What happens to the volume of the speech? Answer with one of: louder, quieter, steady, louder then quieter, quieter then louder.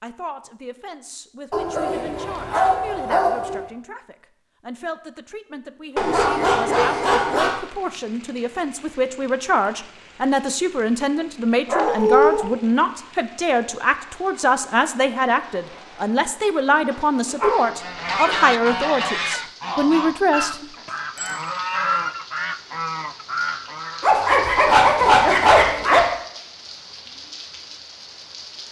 louder.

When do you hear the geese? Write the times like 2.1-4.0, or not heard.
17.6-24.1.